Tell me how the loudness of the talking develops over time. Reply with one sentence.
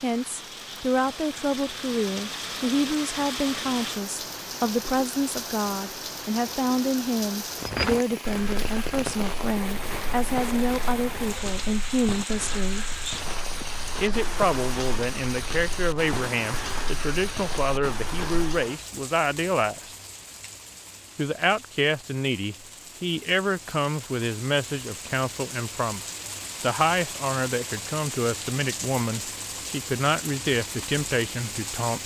The loudness of the talking stays about the same.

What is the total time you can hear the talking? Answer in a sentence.
The talking can be heard for 30 seconds in total.